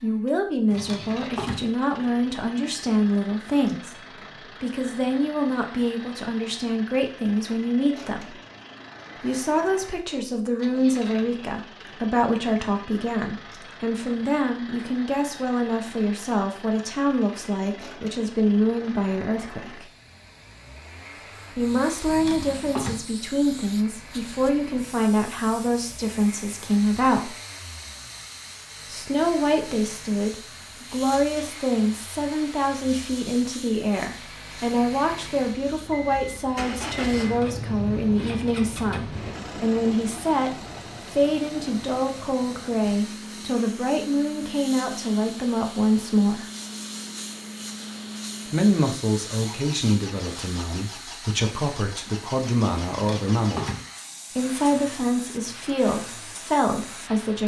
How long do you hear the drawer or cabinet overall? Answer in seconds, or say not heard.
3 s.